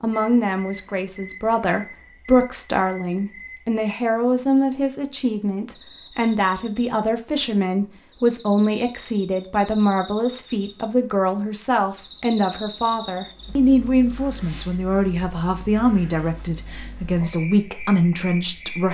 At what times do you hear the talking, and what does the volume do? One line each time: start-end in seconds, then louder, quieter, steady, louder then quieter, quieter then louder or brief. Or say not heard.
0.0-18.9 steady.